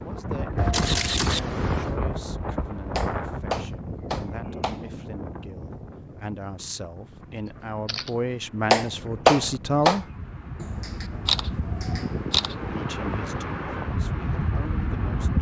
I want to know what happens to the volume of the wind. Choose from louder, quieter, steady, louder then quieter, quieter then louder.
quieter then louder.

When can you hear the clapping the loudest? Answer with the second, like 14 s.
9 s.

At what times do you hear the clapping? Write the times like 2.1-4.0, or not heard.
3.0-4.8, 8.7-10.0.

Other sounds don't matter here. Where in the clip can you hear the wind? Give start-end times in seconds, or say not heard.
0.0-15.3.